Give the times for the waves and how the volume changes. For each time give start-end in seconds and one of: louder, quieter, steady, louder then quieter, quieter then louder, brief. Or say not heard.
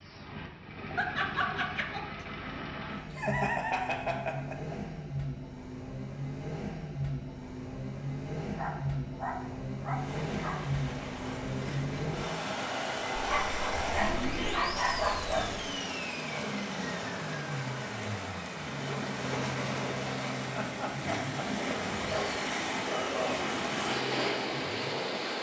9.9-25.3 louder.